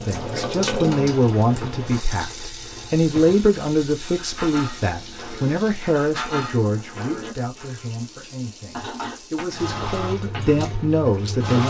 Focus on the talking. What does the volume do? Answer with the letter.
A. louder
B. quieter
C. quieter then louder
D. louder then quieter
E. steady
C.